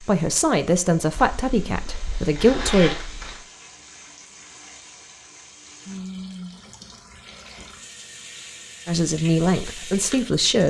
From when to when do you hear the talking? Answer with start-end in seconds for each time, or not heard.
0.1-3.0, 8.8-10.6.